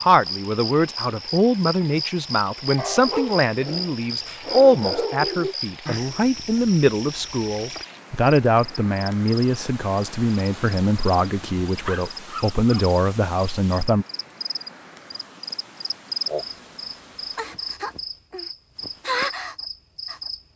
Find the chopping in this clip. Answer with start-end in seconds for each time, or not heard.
not heard.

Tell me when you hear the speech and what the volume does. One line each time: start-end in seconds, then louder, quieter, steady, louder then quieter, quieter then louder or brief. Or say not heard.
0.0-14.1 steady.